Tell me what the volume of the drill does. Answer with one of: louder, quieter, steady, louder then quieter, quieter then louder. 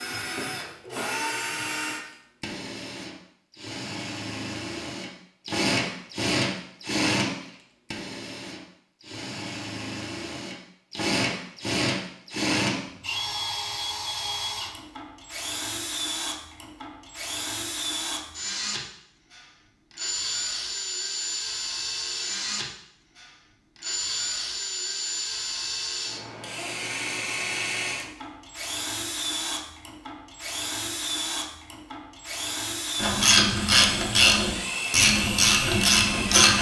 steady.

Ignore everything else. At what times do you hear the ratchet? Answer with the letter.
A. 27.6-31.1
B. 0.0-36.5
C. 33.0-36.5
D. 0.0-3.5
C.